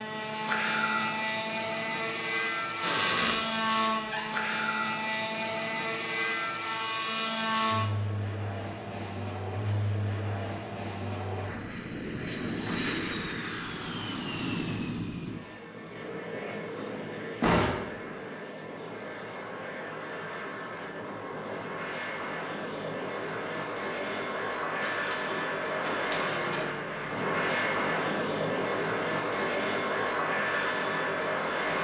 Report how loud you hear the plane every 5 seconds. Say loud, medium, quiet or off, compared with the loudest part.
loud, loud, medium, medium, medium, loud, loud.